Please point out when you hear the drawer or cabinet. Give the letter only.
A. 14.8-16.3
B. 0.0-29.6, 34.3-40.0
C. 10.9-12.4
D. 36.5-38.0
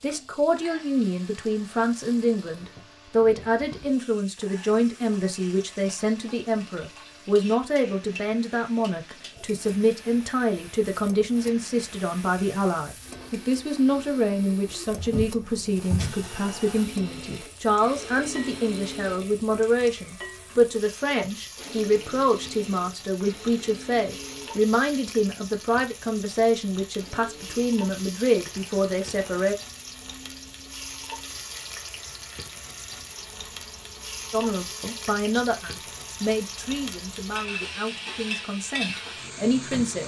A.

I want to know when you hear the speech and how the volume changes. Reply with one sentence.
The speech can be heard from 0.0 to 29.6 s, at a steady volume; and from 34.3 to 40.0 s, getting quieter then louder.